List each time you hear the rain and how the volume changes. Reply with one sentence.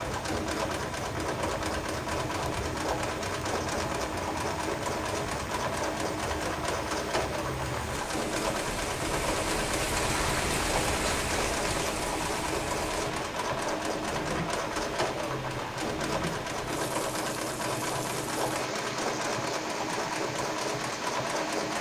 You can hear the rain from 0.0 to 21.7 s, getting louder then quieter.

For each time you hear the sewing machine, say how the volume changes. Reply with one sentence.
You can hear the sewing machine from 0.0 to 21.7 s, at a steady volume.